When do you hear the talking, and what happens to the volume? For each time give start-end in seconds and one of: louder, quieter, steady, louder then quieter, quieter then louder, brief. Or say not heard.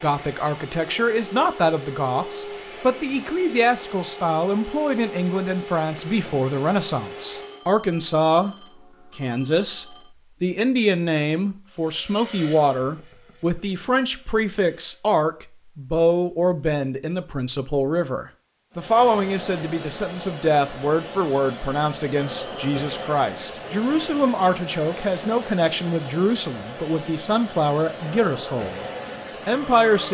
0.0-8.6 steady
9.2-30.1 steady.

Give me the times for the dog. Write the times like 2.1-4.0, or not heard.
not heard.